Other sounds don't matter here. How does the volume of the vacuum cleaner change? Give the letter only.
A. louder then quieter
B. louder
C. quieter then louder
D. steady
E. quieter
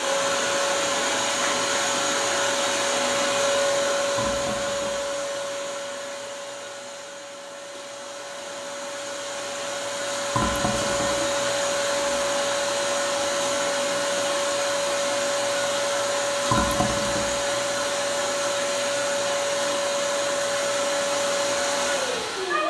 C.